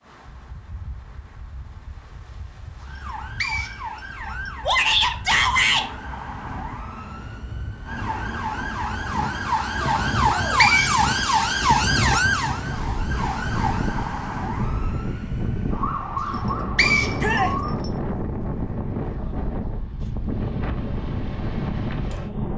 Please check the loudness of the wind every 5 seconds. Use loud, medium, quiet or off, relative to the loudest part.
quiet, medium, loud, loud, loud.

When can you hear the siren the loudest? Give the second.
12 s.